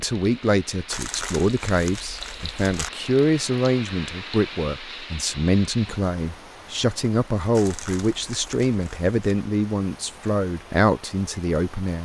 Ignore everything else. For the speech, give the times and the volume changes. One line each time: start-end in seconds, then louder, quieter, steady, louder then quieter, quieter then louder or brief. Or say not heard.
0.0-12.0 steady.